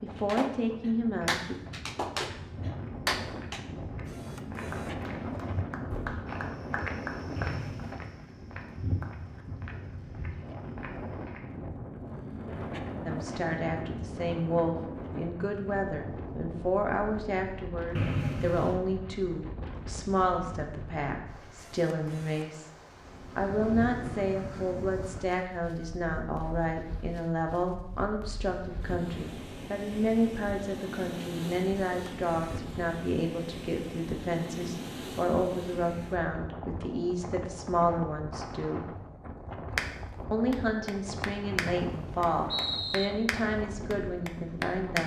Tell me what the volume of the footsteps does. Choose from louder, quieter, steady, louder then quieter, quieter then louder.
louder then quieter.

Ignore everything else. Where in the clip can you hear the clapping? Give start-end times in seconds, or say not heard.
0.1-9.2, 39.8-45.0.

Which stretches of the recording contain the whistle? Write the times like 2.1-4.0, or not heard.
7.3-8.0, 17.9-18.8, 41.5-43.1.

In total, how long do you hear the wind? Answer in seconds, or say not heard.
45 s.